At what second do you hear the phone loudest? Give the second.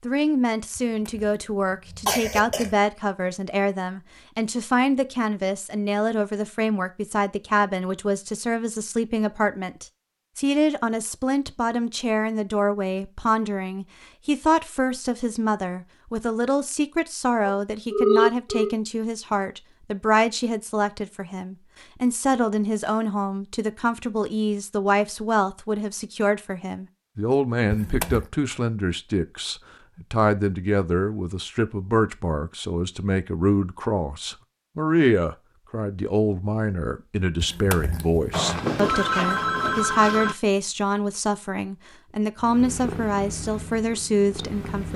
18 s.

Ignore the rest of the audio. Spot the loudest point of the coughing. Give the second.
2 s.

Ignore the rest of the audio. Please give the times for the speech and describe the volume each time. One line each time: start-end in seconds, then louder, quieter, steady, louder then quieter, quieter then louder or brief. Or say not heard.
0.0-44.9 steady.